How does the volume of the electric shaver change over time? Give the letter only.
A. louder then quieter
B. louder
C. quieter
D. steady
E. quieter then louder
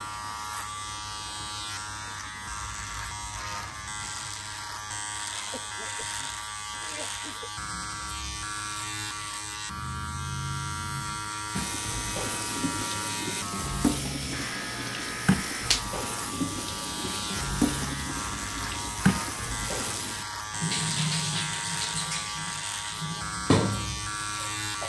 D.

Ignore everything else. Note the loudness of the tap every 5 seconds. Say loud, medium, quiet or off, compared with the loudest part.
off, off, loud, loud, loud.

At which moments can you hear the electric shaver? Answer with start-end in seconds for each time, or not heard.
0.0-24.8.